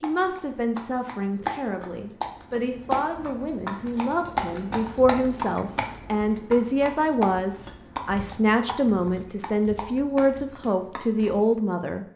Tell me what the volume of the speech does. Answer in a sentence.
The loudness of the speech goes up.